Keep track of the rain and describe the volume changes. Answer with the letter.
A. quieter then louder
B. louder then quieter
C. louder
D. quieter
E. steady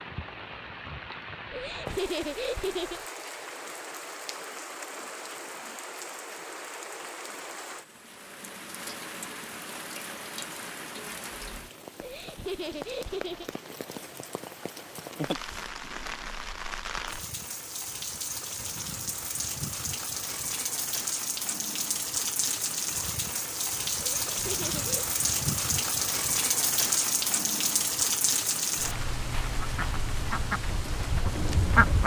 C.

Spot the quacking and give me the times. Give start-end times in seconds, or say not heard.
29.4-32.0.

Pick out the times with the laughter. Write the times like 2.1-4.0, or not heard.
1.5-3.0, 12.0-13.5, 24.2-25.1.